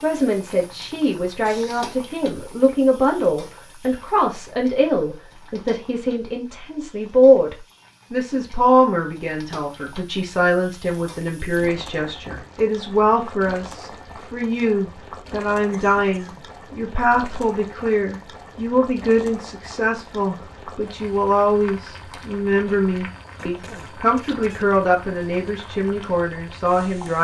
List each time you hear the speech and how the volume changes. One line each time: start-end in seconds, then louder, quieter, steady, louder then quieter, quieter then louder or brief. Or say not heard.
0.0-27.1 steady.